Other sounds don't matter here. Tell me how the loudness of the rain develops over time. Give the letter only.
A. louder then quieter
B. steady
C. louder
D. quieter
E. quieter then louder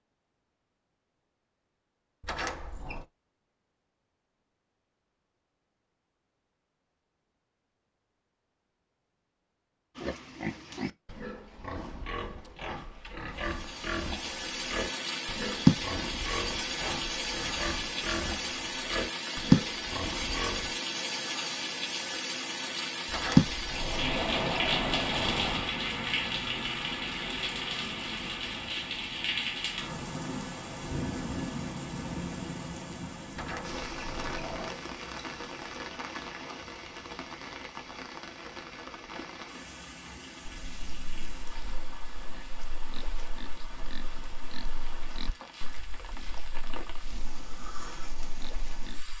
D.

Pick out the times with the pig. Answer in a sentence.
You can hear the pig from 9.9 to 20.8 s and from 40.5 to 49.1 s.